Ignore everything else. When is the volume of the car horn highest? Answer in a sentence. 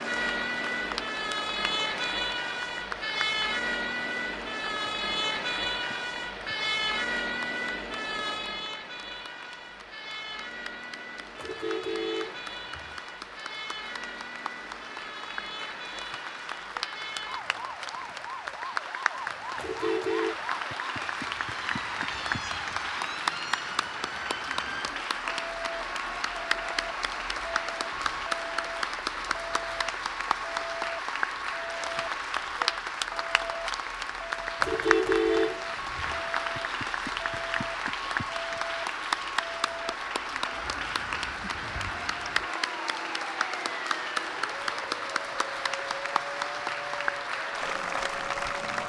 The volume of the car horn peaks at 35 seconds.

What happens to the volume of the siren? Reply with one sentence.
The volume of the siren goes down.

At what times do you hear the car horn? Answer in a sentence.
You can hear the car horn from 11.3 to 13.0 s, from 19.6 to 20.4 s and from 34.6 to 36.2 s.